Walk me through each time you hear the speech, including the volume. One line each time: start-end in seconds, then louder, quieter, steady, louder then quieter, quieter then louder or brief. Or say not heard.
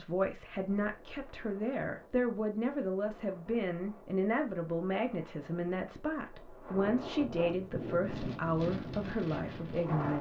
0.0-10.1 steady.